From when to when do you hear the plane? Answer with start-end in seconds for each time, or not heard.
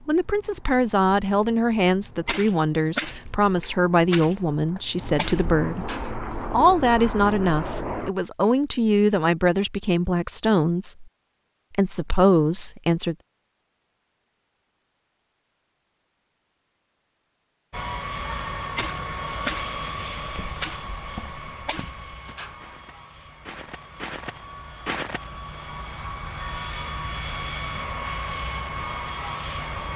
0.0-8.2, 17.7-29.9.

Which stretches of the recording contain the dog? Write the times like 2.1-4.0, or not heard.
not heard.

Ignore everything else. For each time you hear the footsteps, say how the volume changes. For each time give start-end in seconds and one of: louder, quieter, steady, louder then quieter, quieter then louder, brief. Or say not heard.
20.2-25.3 quieter then louder.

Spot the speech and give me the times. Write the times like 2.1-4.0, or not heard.
0.1-11.1, 11.7-13.2.